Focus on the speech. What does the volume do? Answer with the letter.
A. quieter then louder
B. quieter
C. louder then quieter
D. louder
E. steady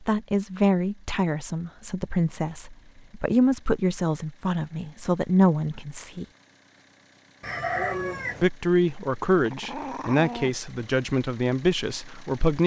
E.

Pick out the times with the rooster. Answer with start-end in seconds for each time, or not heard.
7.4-8.4.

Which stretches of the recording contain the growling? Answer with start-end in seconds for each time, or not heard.
9.4-10.6.